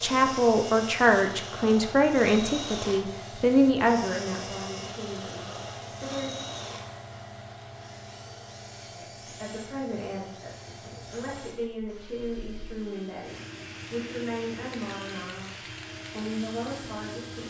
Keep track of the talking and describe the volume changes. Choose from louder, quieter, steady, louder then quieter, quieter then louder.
quieter.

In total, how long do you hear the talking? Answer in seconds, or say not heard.
15 s.